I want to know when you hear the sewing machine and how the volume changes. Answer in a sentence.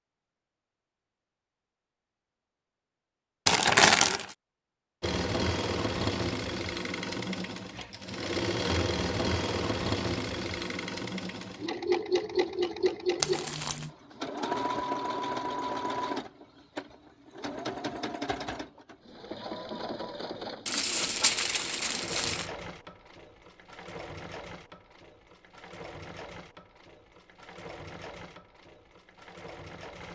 You can hear the sewing machine from 5.0 to 30.0 s, getting quieter.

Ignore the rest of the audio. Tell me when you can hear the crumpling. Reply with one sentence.
You can hear the crumpling from 3.5 to 4.3 s, from 13.2 to 13.9 s and from 20.6 to 22.5 s.